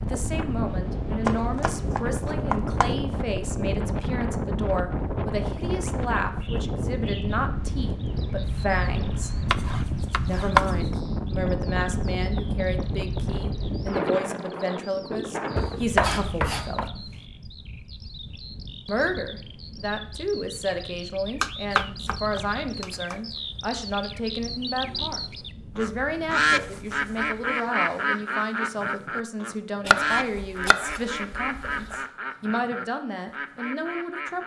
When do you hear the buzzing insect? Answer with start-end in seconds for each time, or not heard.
not heard.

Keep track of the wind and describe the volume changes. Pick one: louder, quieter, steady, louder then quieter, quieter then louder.
quieter.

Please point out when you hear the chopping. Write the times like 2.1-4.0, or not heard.
1.2-3.0, 9.5-10.8, 15.6-16.9, 21.4-23.1, 29.9-31.9.